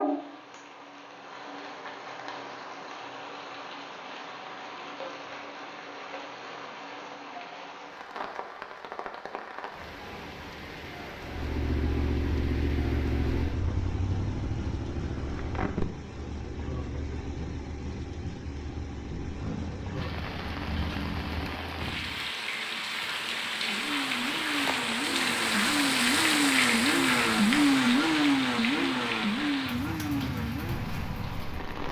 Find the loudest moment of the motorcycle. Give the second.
28 s.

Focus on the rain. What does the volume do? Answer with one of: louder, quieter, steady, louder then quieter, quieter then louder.
louder.